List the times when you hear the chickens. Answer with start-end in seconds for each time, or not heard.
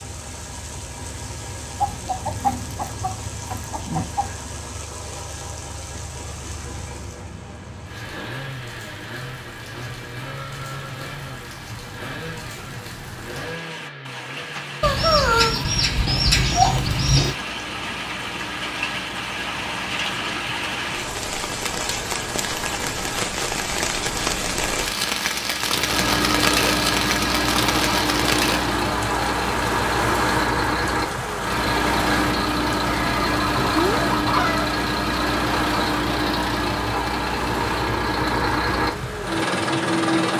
1.8-4.3, 14.8-17.4, 32.9-34.7.